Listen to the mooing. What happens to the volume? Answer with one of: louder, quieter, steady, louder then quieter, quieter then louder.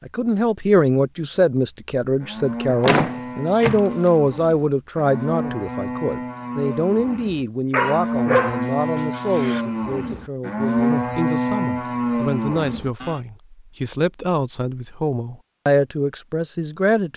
louder.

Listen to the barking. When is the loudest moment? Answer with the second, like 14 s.
8 s.